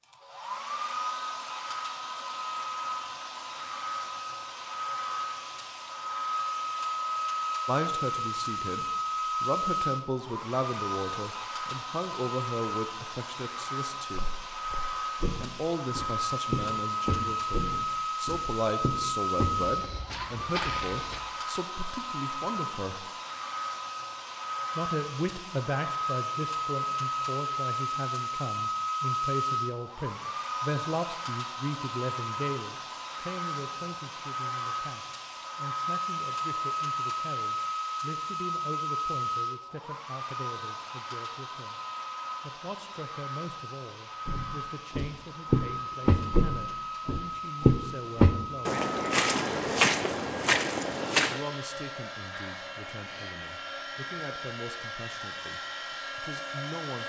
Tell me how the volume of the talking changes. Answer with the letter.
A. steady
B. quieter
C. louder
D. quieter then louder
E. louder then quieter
B.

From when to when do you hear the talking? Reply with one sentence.
The talking can be heard from 7.7 to 14.3 s, from 15.4 to 23.1 s, from 24.8 to 41.8 s, from 42.4 to 48.7 s and from 51.3 to 57.0 s.